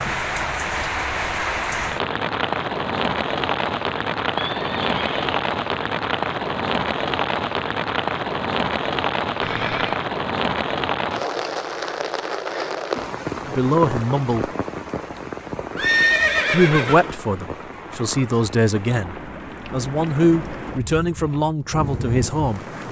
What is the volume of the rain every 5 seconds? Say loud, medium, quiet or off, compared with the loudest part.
loud, loud, loud, medium, medium.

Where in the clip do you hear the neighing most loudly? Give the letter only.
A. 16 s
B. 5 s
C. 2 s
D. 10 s
A.